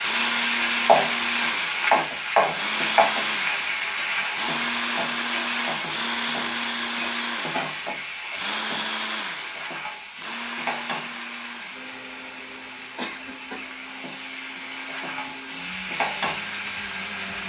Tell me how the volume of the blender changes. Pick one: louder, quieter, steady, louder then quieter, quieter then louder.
quieter.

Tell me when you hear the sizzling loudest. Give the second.
1 s.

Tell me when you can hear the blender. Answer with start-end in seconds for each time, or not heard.
0.0-17.4.